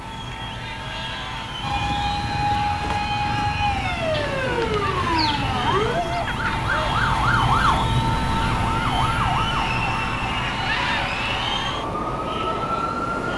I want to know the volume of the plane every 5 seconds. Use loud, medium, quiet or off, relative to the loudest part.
medium, loud, medium.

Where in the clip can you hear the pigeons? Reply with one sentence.
You can hear the pigeons from 4.1 to 6.2 s.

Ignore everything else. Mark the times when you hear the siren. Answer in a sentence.
The siren can be heard from 1.6 to 13.3 s.